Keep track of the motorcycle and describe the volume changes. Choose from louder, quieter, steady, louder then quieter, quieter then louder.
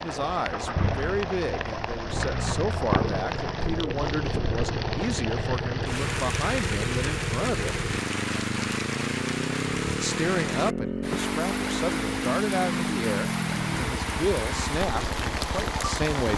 steady.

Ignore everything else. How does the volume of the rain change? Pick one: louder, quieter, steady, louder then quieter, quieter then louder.
steady.